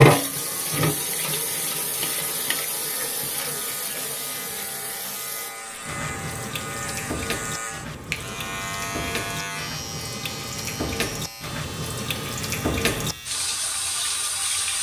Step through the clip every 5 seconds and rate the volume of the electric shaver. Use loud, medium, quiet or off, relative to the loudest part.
medium, loud, medium.